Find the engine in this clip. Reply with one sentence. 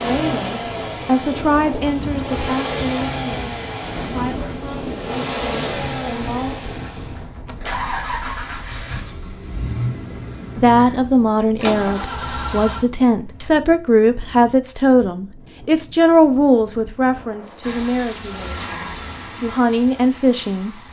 The engine can be heard from 0.0 to 13.1 s and from 17.6 to 20.8 s.